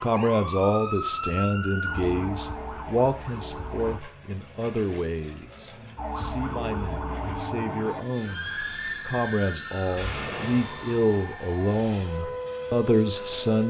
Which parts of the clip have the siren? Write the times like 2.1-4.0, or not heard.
0.0-4.0, 6.0-13.6.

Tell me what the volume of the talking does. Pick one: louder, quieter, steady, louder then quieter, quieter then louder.
quieter then louder.